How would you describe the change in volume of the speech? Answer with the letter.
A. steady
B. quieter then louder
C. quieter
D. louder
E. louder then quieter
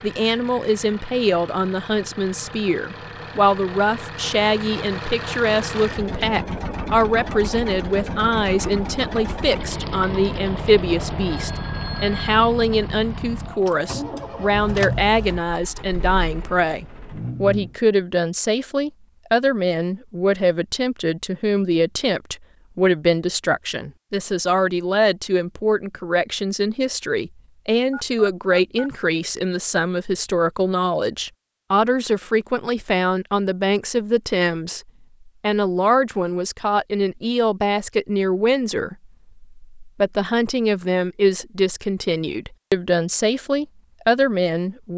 A.